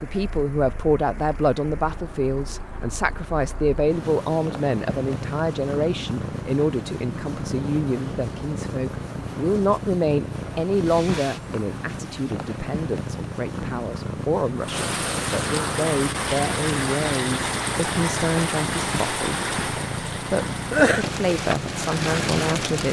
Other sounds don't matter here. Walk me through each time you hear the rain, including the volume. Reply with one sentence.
You can hear the rain from 0.0 to 22.8 s, getting louder.